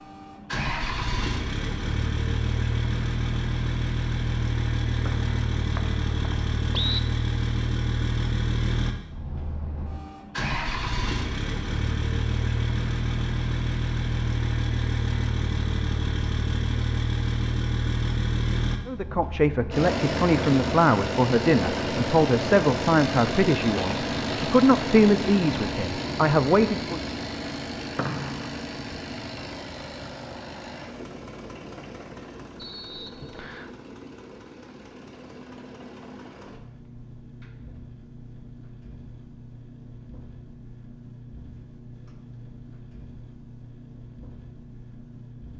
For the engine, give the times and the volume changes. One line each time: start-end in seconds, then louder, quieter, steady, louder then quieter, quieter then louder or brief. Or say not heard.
0.0-45.5 quieter.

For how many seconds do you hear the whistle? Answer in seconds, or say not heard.
4 s.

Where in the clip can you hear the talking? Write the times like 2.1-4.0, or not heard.
18.9-27.0.